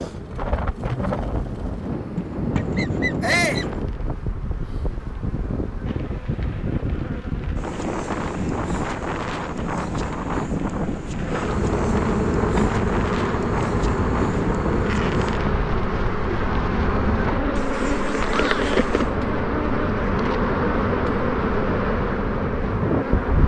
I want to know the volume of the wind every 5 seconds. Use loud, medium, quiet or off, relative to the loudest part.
loud, loud, loud, medium, loud.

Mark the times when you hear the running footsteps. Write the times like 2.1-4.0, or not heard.
not heard.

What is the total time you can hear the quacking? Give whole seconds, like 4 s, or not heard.
3 s.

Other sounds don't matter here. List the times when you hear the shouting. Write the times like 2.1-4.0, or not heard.
3.2-3.6, 18.2-18.8.